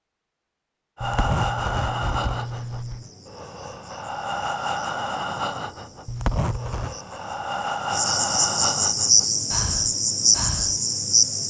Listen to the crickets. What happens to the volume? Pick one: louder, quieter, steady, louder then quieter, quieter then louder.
louder.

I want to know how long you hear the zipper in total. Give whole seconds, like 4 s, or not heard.
3 s.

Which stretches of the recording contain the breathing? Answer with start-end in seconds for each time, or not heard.
0.9-10.8.